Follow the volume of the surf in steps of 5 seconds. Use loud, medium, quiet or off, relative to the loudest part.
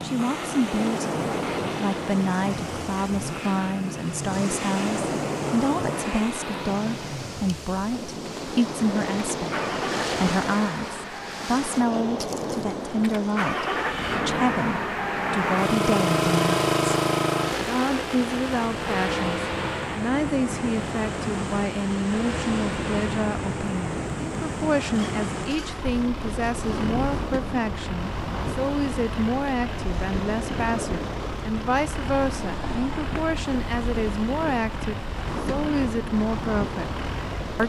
loud, loud, loud, medium, loud, loud, loud, loud.